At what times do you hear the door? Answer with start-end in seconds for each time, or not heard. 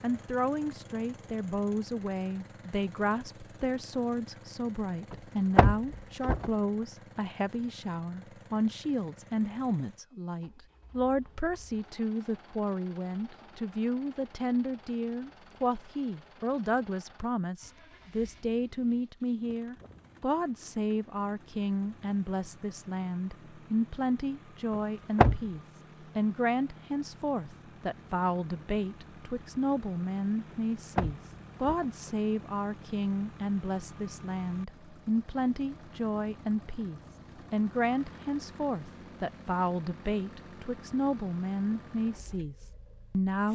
5.1-6.5, 24.8-25.4, 30.5-32.1.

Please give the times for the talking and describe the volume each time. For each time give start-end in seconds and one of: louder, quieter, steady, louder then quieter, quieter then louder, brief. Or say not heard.
0.0-43.5 steady.